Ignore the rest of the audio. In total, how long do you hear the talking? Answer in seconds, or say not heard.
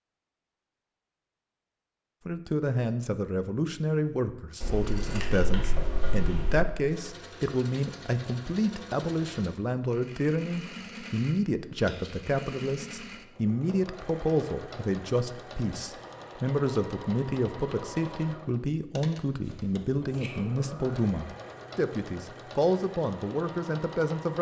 22 s.